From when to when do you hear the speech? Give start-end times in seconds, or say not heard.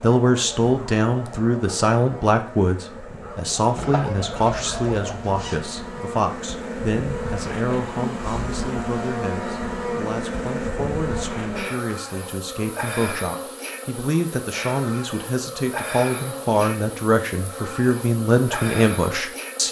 0.0-19.6.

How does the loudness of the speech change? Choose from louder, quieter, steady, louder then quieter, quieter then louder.
quieter then louder.